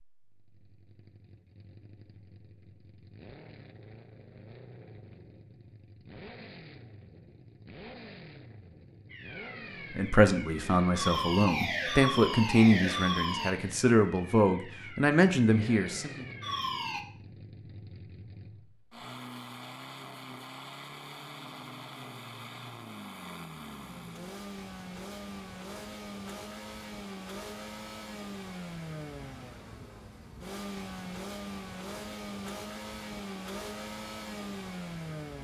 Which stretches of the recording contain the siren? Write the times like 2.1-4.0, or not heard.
9.1-17.1.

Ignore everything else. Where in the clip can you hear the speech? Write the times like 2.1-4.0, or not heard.
9.9-16.2.